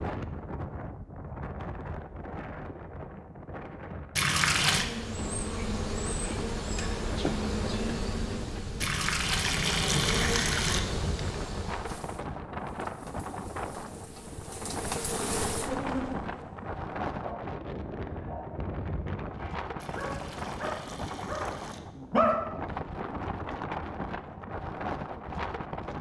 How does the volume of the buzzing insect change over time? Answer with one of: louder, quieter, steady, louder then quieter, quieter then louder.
quieter then louder.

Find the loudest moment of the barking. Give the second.
22 s.